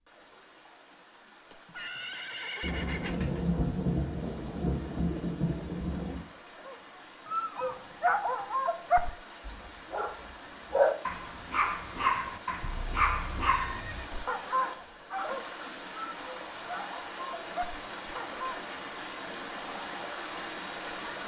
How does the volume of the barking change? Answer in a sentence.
The loudness of the barking goes down.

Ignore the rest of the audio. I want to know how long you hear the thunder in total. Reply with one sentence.
You can hear the thunder for 4 seconds altogether.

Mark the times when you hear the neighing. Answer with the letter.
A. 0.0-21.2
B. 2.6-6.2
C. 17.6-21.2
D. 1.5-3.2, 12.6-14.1
D.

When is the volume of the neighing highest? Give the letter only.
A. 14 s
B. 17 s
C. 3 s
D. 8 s
C.